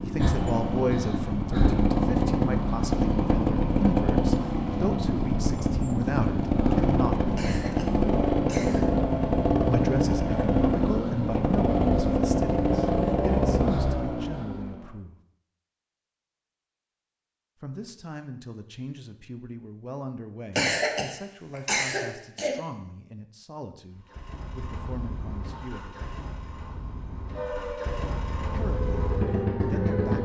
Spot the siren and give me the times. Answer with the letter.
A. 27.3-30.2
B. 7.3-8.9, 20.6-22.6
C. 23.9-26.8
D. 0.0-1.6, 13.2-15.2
A.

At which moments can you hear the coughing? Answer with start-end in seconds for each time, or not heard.
7.3-8.9, 20.6-22.6.